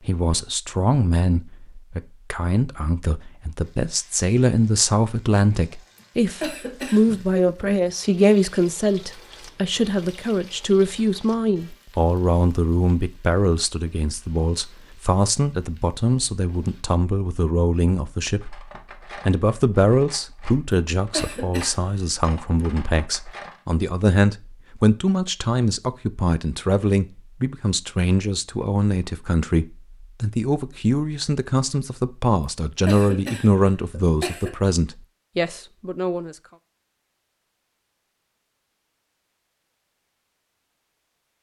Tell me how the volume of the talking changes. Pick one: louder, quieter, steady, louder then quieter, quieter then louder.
steady.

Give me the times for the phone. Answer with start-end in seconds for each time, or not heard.
not heard.